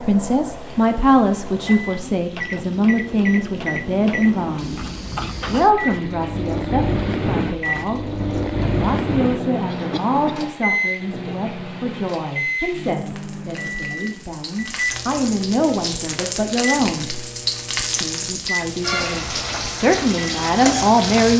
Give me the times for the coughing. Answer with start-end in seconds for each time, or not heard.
9.7-10.4.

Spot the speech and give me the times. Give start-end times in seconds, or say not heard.
0.0-4.8, 5.5-17.2, 18.0-21.3.